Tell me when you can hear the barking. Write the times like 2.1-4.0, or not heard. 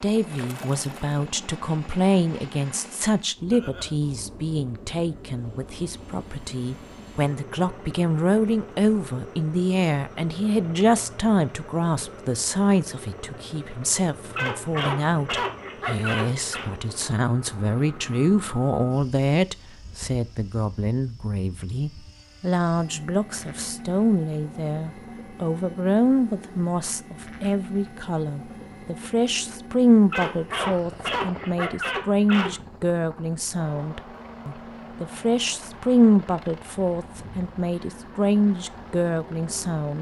14.3-16.7, 30.1-32.6.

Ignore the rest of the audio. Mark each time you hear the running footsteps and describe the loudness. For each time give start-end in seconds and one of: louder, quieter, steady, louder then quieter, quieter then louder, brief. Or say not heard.
not heard.